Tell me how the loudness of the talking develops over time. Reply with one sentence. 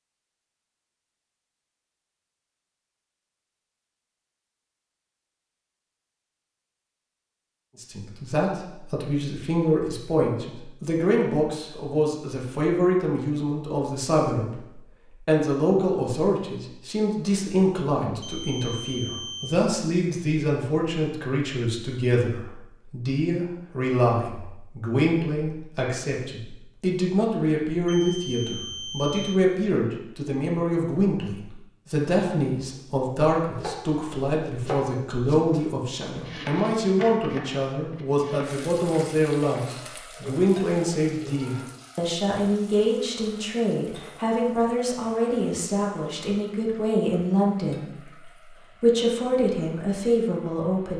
The volume of the talking stays about the same.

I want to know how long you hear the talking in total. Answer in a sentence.
You can hear the talking for 43 seconds altogether.